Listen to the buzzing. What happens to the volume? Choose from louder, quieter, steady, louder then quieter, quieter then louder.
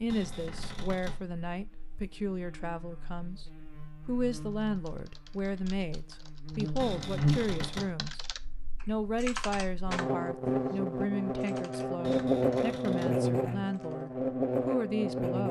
louder.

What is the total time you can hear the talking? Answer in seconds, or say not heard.
14 s.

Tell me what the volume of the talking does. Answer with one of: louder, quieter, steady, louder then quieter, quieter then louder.
steady.